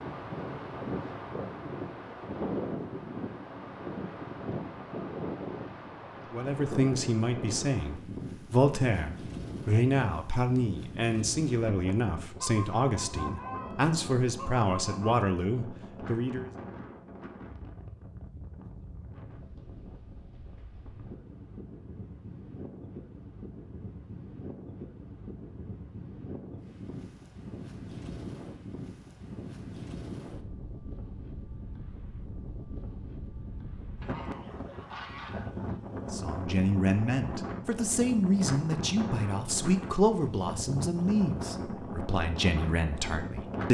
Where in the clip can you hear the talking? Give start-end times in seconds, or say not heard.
6.2-16.5, 36.1-43.6.